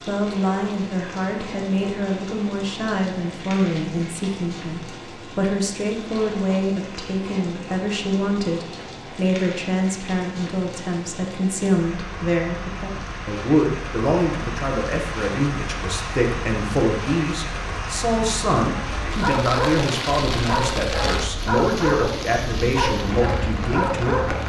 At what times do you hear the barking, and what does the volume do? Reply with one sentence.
You can hear the barking from 18.7 to 24.4 s, at a steady volume.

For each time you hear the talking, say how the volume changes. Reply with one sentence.
You can hear the talking from 0.1 to 24.3 s, at a steady volume.